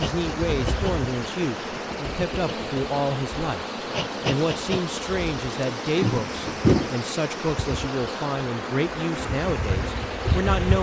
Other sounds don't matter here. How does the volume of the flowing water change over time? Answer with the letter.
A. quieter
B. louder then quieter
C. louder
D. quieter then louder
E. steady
E.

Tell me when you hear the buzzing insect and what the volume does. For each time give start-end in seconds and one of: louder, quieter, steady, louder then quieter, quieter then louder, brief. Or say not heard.
0.0-10.7 louder then quieter.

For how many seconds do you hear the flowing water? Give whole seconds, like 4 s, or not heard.
11 s.